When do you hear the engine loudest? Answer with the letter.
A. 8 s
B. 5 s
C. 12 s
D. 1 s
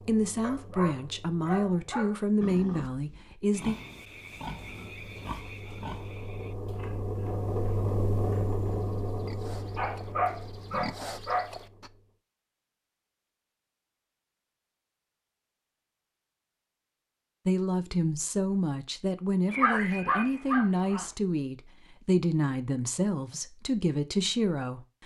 A.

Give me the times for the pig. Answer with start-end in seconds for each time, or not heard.
2.4-11.9.